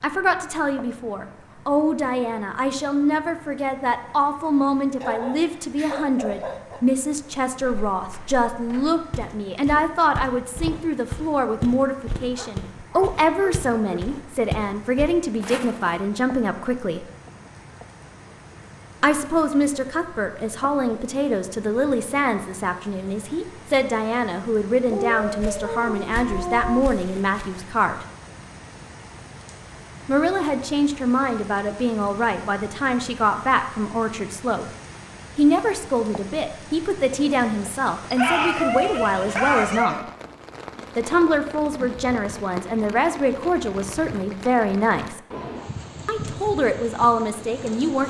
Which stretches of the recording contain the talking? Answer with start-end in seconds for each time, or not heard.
0.0-17.1, 19.0-28.1, 30.1-34.6, 35.4-40.0, 41.0-45.2, 46.0-48.0.